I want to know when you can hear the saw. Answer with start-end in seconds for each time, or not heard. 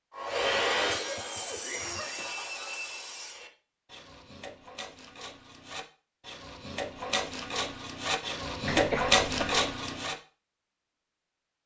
0.1-10.2.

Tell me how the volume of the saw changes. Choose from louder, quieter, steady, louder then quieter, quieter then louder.
quieter then louder.